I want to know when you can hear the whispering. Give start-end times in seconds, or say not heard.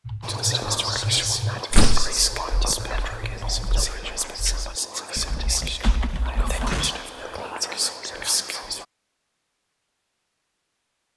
0.2-8.8.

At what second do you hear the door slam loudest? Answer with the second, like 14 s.
2 s.